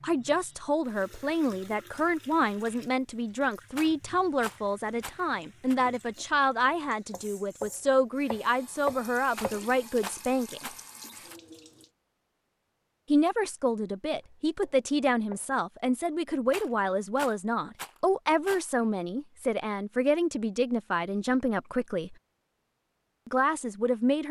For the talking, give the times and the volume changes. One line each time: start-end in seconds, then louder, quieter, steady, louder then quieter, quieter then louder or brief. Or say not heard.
0.0-10.7 steady
13.1-22.1 steady
23.2-24.2 brief.